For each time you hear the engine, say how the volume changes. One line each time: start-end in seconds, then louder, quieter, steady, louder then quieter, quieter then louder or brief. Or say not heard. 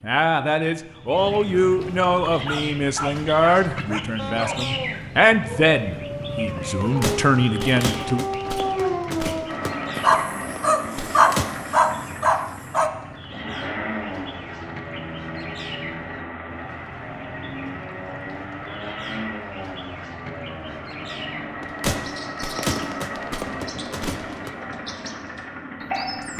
9.4-26.3 steady.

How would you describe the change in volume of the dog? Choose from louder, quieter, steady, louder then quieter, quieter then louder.
louder.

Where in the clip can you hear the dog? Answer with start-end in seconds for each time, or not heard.
2.3-12.9.